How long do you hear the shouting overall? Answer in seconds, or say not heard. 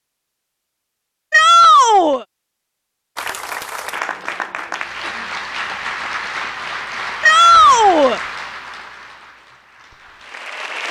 2 s.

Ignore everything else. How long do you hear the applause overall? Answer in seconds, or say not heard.
8 s.